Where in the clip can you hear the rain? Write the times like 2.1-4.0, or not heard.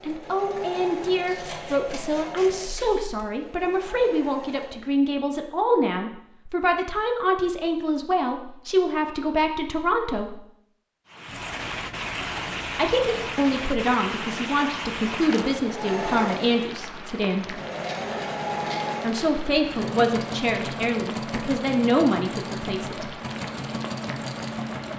11.1-24.9.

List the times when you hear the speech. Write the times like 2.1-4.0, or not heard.
0.0-10.4, 12.8-17.6, 19.0-23.1.